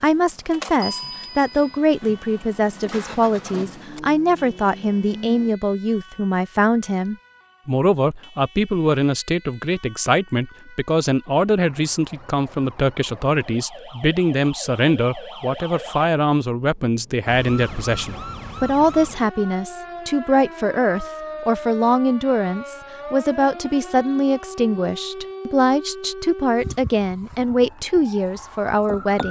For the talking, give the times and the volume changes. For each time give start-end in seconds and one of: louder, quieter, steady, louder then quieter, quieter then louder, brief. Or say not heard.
0.0-29.2 steady.